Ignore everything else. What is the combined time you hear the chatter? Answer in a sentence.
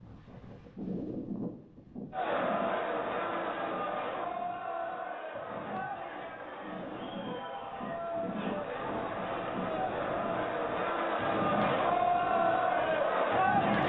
The chatter can be heard for 12 seconds in total.